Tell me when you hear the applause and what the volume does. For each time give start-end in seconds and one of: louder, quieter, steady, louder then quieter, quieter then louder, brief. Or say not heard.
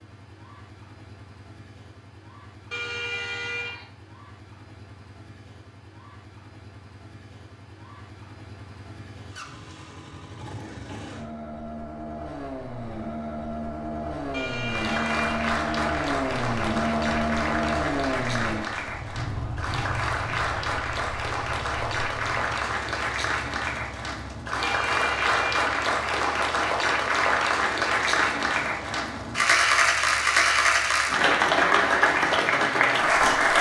14.6-33.5 louder.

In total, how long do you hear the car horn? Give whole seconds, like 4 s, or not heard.
3 s.